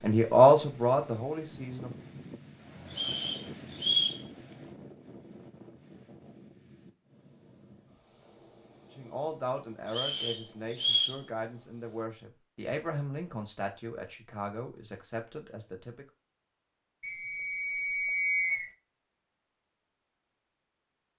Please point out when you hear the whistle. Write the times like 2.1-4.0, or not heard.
2.9-4.2, 9.9-11.2, 17.0-18.7.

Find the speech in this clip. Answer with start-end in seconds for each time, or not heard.
0.0-2.1, 8.9-16.1.